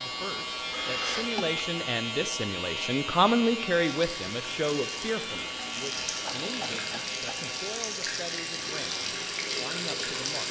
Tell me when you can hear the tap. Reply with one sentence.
You can hear the tap from 3.8 to 10.4 s.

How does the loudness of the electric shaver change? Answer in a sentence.
The loudness of the electric shaver goes down.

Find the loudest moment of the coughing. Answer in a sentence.
The loudest moment of the coughing is at 1 second.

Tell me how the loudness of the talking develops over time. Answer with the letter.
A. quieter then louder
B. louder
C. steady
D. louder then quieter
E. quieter
D.